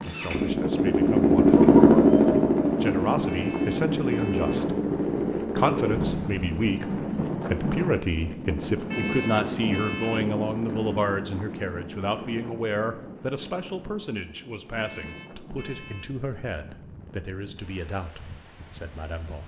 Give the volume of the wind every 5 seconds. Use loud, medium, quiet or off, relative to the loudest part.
loud, loud, medium, quiet.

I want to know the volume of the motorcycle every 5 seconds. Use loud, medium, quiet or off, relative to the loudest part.
loud, medium, off, off.